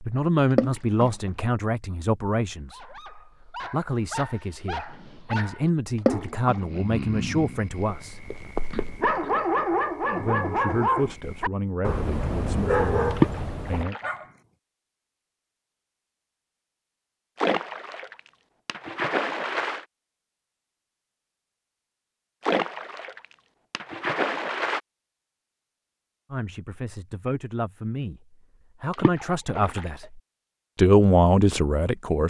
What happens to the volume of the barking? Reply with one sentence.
The volume of the barking goes up.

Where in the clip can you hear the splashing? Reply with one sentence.
The splashing can be heard from 0.5 to 1.1 s, from 6.0 to 6.7 s, from 13.1 to 14.2 s, from 17.4 to 19.9 s, from 22.4 to 24.8 s and from 28.9 to 30.1 s.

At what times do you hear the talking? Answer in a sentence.
The talking can be heard from 0.0 to 8.2 s, from 10.2 to 13.9 s and from 26.3 to 32.2 s.